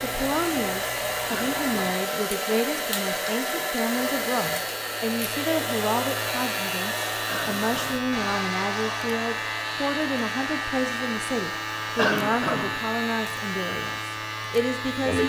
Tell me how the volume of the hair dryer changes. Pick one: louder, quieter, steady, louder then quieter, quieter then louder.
quieter.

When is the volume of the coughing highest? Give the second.
12 s.